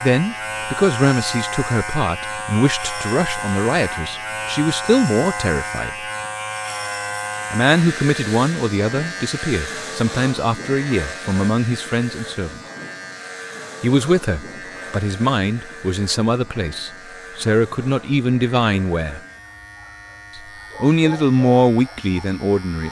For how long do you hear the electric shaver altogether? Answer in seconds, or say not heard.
23 s.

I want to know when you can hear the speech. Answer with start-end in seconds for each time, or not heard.
0.0-6.0, 7.5-12.6, 13.8-19.2, 20.4-22.8.